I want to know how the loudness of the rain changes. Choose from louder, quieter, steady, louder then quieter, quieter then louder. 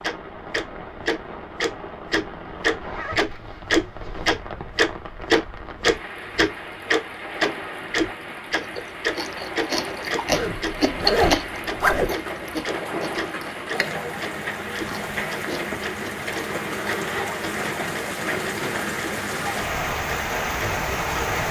louder.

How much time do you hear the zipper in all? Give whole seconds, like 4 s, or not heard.
4 s.